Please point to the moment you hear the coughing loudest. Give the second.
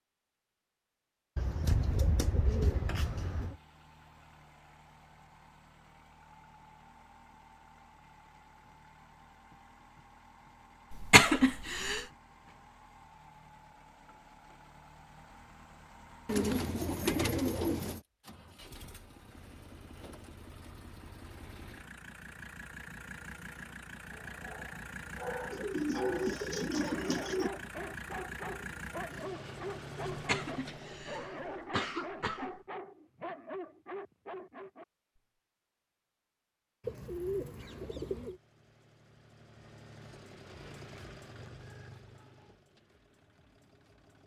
11 s.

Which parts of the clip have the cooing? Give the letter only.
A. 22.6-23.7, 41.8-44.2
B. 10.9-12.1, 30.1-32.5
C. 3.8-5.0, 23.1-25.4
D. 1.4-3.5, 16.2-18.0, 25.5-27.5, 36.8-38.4
D.